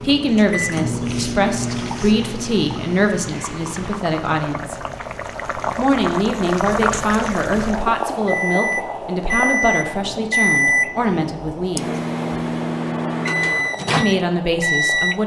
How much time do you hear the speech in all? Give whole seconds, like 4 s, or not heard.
12 s.